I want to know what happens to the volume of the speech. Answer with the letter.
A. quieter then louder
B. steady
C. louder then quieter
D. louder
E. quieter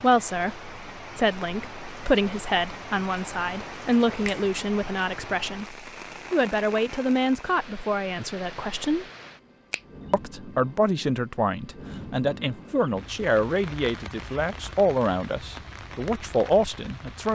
B.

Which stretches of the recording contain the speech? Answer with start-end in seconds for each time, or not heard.
0.0-9.1, 10.1-17.3.